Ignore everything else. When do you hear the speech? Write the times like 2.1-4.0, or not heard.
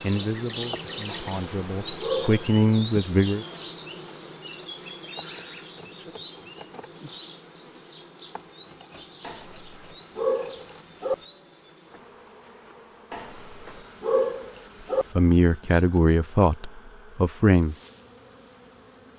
0.0-3.5, 15.2-17.8.